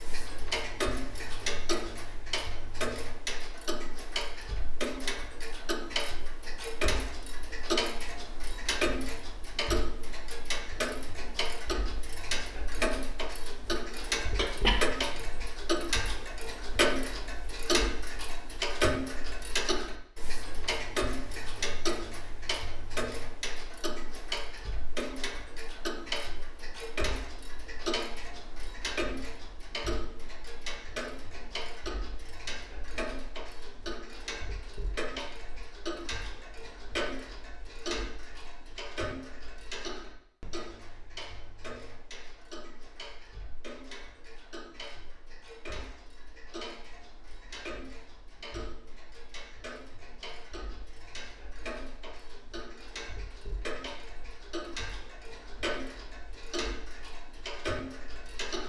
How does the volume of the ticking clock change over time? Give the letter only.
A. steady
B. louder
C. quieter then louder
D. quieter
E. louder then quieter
D.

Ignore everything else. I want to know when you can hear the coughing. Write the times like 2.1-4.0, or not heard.
14.3-15.3.